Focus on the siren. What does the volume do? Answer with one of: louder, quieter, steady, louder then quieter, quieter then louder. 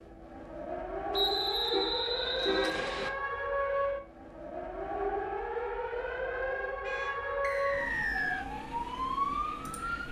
steady.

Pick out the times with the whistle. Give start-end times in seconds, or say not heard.
1.1-3.1, 7.4-8.4.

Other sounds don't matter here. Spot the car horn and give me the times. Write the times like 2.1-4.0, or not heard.
1.6-2.9, 6.3-7.3.